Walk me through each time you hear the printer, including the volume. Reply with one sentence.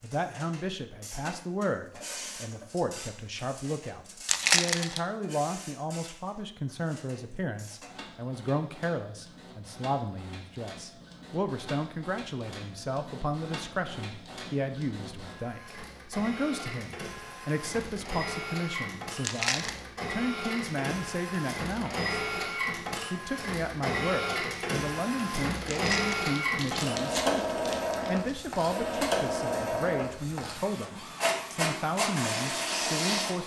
You can hear the printer from 0.0 to 33.4 s, getting louder.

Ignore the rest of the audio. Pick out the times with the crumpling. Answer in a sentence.
You can hear the crumpling from 4.2 to 5.0 s, from 19.2 to 19.8 s and from 25.6 to 28.4 s.